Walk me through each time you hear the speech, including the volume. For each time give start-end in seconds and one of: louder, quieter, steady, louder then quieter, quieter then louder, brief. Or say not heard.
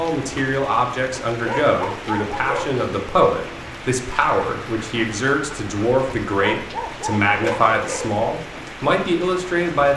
0.0-9.9 steady.